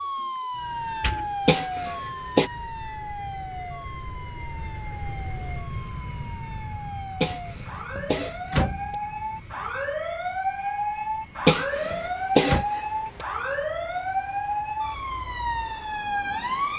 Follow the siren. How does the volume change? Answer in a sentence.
The volume of the siren goes down, then up.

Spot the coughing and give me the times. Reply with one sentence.
You can hear the coughing from 1.4 to 2.5 s, from 7.2 to 8.9 s and from 11.4 to 13.2 s.